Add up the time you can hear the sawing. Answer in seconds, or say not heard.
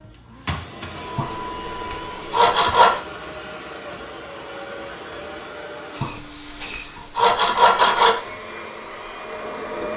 4 s.